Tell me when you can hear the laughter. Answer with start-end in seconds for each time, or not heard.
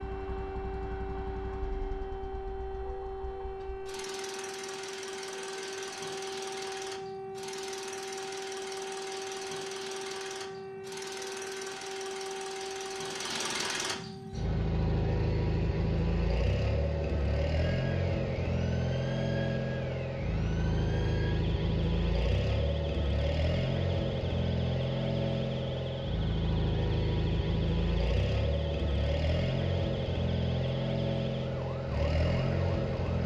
not heard.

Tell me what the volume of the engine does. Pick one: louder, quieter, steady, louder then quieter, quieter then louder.
louder.